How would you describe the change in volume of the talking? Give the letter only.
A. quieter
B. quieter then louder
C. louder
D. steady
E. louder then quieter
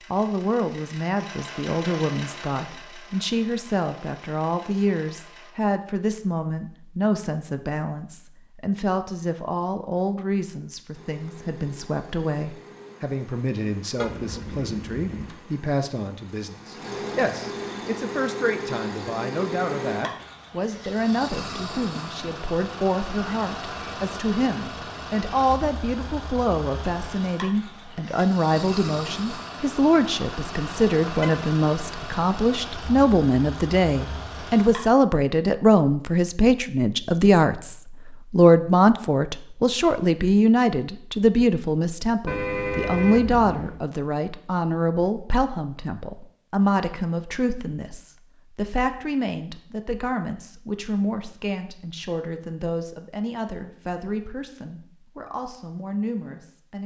E.